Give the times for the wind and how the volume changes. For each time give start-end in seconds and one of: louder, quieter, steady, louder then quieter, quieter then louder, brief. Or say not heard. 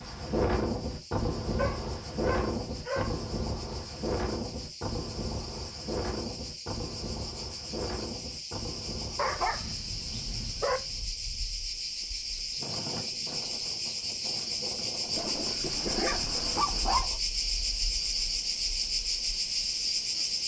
0.0-17.1 quieter.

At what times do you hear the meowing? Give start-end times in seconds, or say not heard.
not heard.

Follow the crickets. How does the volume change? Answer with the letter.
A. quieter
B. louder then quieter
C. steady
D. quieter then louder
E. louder
E.